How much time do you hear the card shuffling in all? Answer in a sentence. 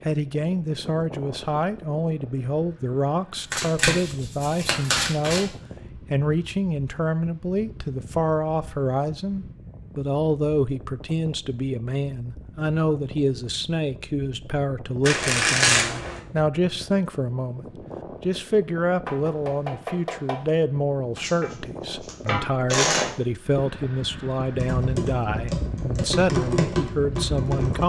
The card shuffling can be heard for 5 seconds in total.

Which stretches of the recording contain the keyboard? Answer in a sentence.
You can hear the keyboard from 24.5 to 27.8 s.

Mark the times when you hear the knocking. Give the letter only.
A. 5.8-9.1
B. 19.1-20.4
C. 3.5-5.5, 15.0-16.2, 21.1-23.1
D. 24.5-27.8
B.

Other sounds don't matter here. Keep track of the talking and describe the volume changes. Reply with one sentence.
The loudness of the talking stays about the same.